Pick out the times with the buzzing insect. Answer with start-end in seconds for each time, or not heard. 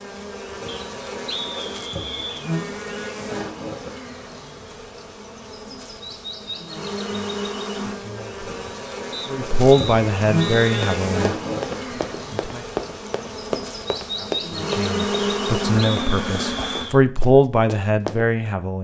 0.0-16.9.